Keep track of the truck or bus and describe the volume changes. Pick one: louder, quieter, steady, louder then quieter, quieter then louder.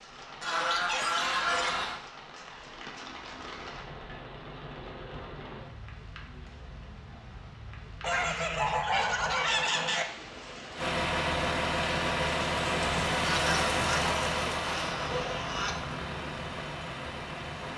quieter.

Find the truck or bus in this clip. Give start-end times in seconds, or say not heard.
10.8-17.7.